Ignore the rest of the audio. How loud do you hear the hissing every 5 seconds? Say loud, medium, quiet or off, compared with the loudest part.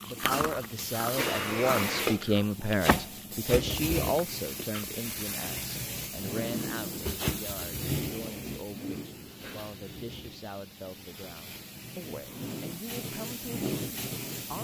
loud, loud, medium.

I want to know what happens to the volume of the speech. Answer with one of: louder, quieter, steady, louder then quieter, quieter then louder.
quieter.